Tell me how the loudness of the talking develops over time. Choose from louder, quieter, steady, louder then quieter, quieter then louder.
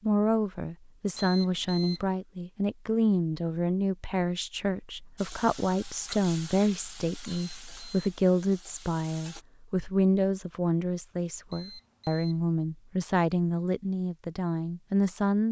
steady.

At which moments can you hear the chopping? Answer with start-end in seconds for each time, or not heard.
not heard.